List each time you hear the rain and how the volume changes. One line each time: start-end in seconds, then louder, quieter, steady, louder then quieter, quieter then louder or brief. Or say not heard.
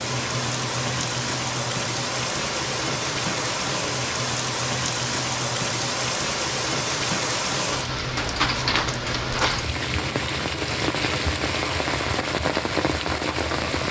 0.0-13.8 steady.